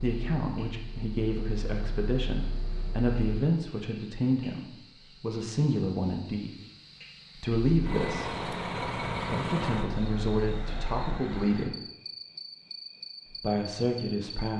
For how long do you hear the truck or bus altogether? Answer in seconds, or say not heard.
7 s.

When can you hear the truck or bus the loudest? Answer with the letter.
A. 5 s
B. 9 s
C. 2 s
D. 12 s
B.